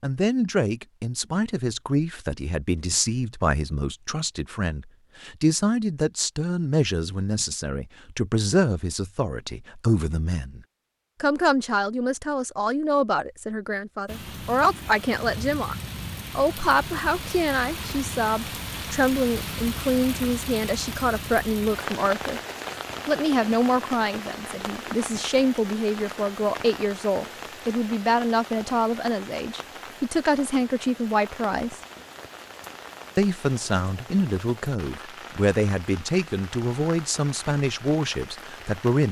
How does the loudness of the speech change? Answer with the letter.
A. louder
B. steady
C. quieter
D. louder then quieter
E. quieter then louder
B.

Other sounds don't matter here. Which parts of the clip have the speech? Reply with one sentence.
The speech can be heard from 0.0 to 10.6 s, from 11.2 to 15.8 s, from 16.4 to 22.4 s, from 23.1 to 31.8 s and from 33.1 to 39.0 s.